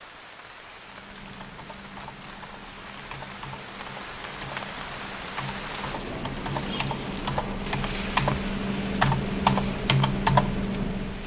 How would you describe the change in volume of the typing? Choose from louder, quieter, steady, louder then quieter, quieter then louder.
louder.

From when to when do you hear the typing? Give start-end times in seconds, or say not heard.
0.7-11.2.